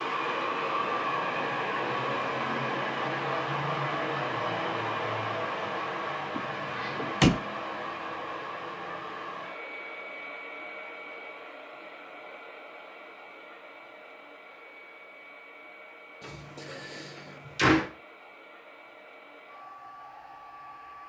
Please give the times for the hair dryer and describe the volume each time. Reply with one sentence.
The hair dryer can be heard from 0.0 to 21.0 s, getting quieter.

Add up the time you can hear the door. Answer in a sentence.
The door can be heard for 3 seconds in total.